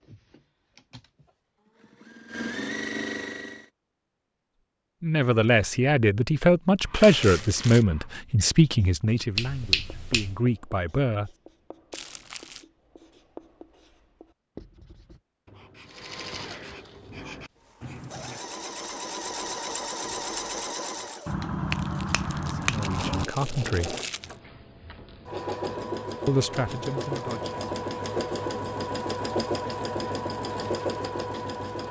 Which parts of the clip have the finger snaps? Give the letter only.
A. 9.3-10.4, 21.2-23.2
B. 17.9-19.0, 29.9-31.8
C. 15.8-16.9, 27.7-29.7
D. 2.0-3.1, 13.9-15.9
A.